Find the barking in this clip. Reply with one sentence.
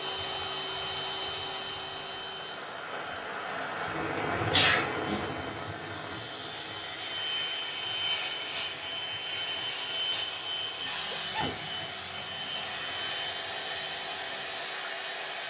The barking can't be heard in this clip.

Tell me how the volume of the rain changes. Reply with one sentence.
The loudness of the rain goes down.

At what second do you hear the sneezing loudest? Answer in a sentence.
The loudest moment of the sneezing is at 5 seconds.